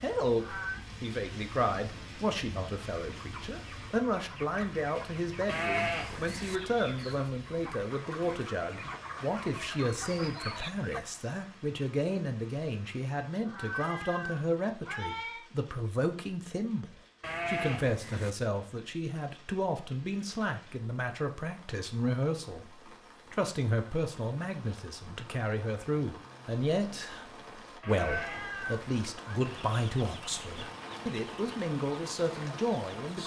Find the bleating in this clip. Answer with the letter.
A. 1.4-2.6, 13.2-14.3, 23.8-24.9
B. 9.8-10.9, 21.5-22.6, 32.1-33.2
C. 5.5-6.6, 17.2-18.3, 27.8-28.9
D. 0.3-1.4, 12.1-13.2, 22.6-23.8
C.